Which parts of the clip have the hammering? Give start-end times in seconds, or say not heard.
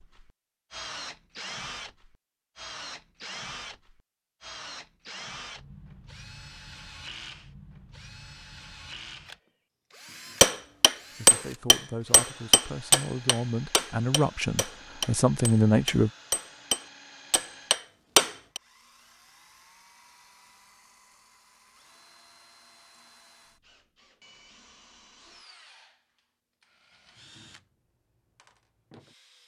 10.4-18.6.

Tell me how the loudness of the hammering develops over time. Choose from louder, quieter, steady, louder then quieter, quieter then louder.
quieter then louder.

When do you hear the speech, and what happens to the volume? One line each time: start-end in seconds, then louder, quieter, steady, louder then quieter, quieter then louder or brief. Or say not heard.
11.2-16.1 louder.